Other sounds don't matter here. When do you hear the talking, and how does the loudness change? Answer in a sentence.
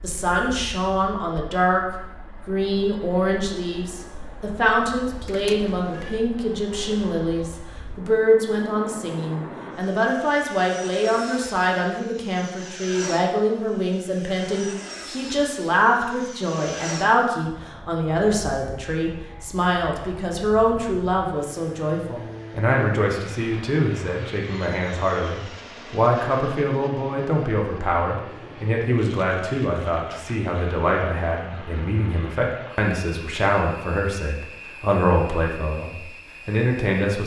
You can hear the talking briefly from 0.0 to 1.8 s; and from 2.5 to 37.2 s, at a steady volume.